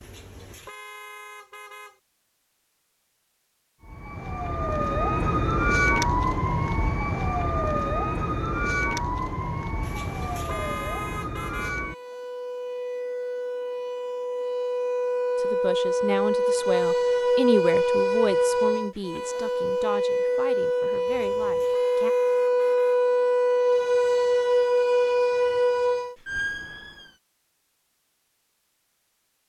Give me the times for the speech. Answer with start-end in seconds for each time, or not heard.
15.3-22.1.